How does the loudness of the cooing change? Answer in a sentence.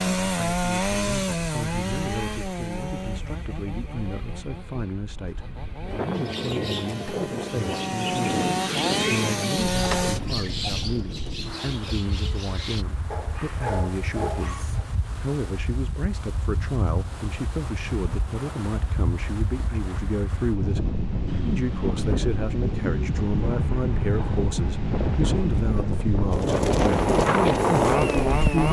The volume of the cooing goes up, then down.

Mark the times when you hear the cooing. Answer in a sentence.
The cooing can be heard from 6.1 to 12.8 s.